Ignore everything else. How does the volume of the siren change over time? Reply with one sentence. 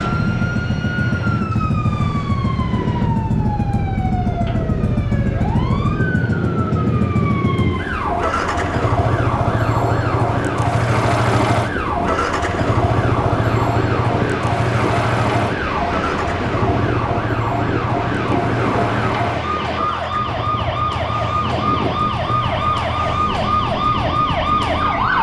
The volume of the siren goes up.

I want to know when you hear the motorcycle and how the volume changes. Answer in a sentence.
The motorcycle can be heard from 0.0 to 25.1 s, getting quieter.